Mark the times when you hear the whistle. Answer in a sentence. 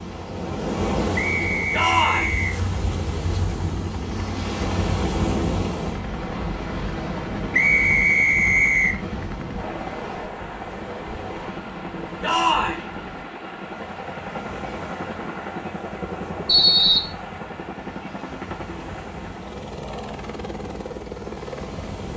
The whistle can be heard from 1.1 to 2.5 s, from 7.5 to 9.0 s and from 16.4 to 17.1 s.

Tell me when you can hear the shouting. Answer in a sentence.
You can hear the shouting from 1.7 to 2.4 s and from 12.2 to 12.8 s.